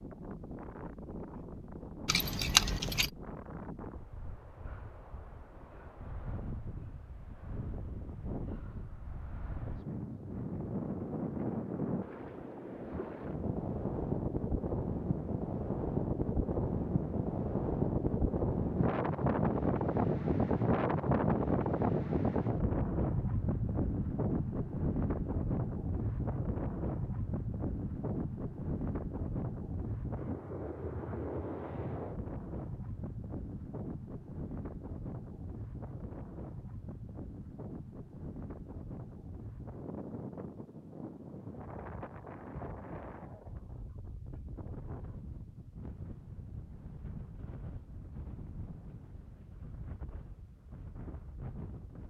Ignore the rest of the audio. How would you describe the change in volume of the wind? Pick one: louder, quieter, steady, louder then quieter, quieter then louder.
louder then quieter.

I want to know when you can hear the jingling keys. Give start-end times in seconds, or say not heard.
2.0-3.1.